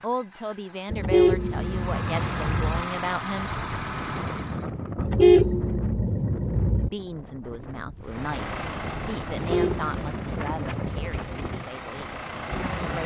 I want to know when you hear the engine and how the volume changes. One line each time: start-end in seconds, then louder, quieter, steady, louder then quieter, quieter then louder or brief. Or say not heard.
0.0-4.7 louder
8.0-13.0 quieter then louder.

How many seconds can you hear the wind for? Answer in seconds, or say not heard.
10 s.